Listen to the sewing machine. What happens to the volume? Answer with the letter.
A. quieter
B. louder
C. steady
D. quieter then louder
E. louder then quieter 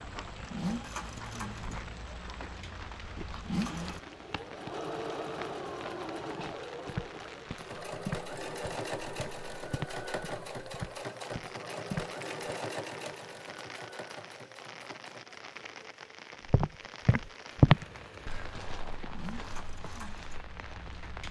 A.